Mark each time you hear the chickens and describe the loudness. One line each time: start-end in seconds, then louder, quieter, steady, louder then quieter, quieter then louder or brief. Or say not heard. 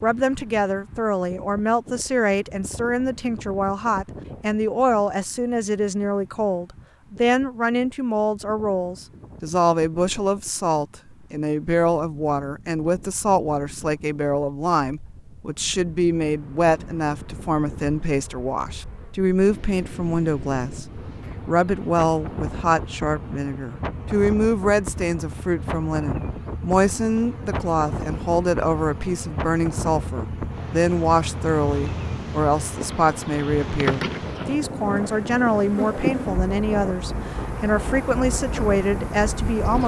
not heard.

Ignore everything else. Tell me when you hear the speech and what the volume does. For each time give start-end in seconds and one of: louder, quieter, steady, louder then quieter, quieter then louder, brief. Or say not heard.
0.0-39.8 steady.